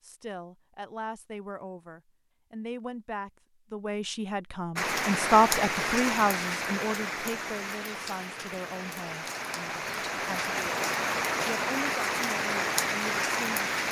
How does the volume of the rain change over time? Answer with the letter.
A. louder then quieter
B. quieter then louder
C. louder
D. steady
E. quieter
B.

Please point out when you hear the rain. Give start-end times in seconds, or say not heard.
4.8-13.8.